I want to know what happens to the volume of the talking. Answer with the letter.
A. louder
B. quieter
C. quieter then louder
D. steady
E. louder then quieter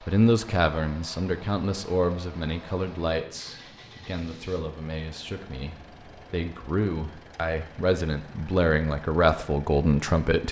C.